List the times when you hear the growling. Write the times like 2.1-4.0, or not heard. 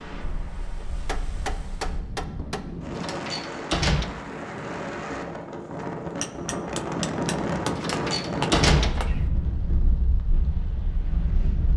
not heard.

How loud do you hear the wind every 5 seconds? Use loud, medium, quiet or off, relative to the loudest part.
medium, loud, medium.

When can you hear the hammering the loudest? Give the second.
9 s.